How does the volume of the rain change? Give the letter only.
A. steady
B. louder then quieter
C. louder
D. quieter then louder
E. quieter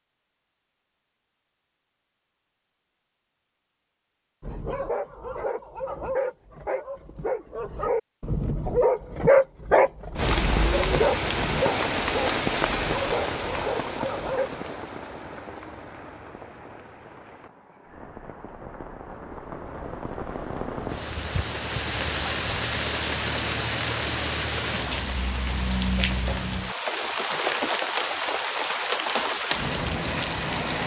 D.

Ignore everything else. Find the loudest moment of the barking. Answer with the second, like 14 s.
9 s.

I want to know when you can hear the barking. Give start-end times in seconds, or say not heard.
4.4-14.5.